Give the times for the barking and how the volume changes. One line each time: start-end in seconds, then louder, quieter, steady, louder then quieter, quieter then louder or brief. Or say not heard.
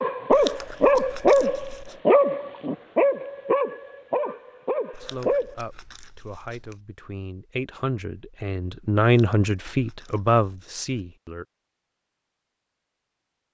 0.0-5.5 quieter.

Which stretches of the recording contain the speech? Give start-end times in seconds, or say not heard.
5.0-11.4.